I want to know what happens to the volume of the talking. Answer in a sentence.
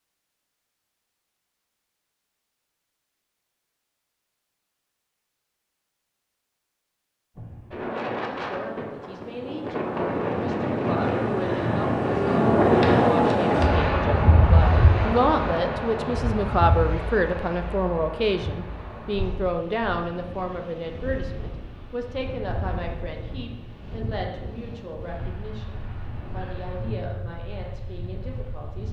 The volume of the talking goes up, then down.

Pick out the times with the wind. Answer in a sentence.
The wind can be heard from 7.3 to 28.8 s.